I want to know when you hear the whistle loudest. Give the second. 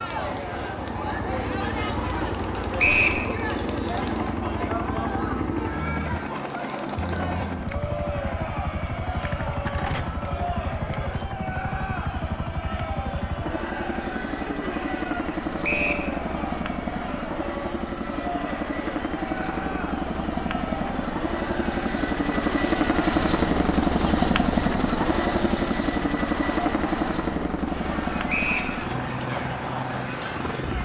3 s.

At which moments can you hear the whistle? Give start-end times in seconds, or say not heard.
2.8-3.2, 15.6-16.1, 28.2-28.7.